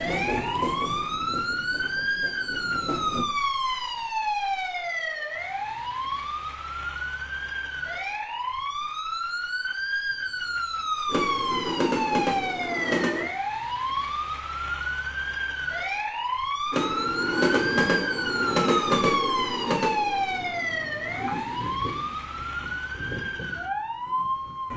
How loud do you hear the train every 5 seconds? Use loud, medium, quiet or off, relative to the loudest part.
medium, off, loud, loud, quiet.